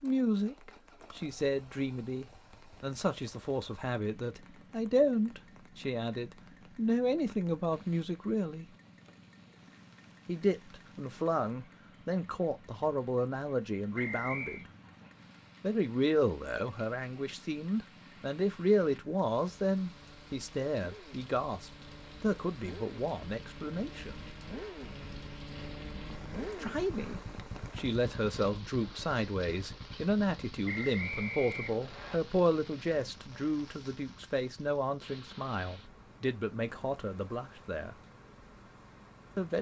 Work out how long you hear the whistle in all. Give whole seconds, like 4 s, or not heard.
2 s.